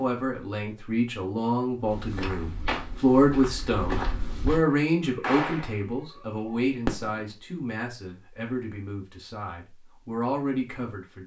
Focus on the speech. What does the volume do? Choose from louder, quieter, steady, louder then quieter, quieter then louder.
louder then quieter.